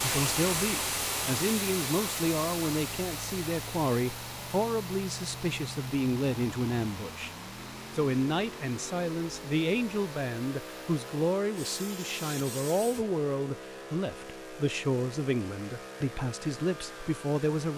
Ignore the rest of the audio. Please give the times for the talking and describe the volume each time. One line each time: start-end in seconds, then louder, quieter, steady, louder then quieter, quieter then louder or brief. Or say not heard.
0.0-7.3 steady
7.9-17.7 steady.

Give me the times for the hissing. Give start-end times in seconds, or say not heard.
0.0-13.1.